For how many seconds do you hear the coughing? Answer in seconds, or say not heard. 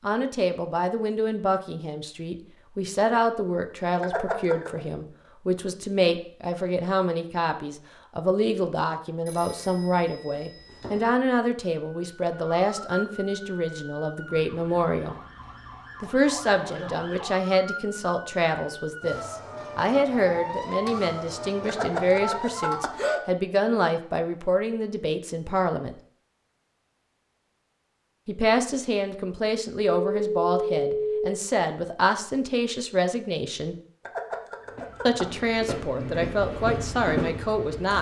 4 s.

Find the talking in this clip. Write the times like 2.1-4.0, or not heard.
0.0-15.2, 16.0-25.9, 28.2-33.8, 35.0-37.9.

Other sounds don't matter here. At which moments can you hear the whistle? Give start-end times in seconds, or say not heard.
not heard.